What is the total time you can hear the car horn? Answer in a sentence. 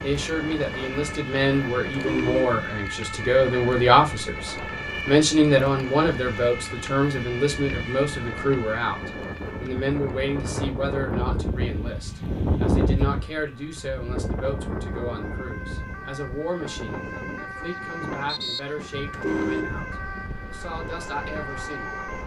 You can hear the car horn for 2 seconds altogether.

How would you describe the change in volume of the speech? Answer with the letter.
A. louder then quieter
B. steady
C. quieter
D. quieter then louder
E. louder
C.